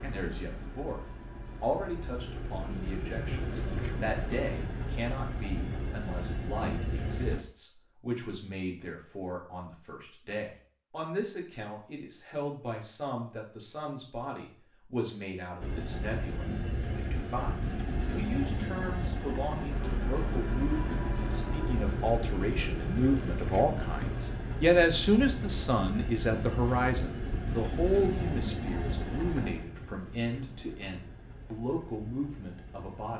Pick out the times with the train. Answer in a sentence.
The train can be heard from 0.0 to 7.5 s and from 15.6 to 33.1 s.